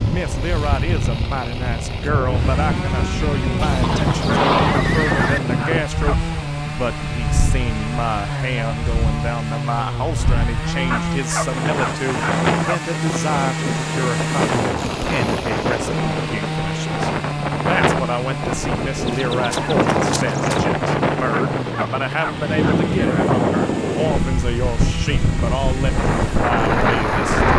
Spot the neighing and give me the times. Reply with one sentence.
The neighing can be heard from 3.5 to 5.4 s and from 19.1 to 20.6 s.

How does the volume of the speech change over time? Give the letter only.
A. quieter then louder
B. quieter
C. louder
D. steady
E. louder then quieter
D.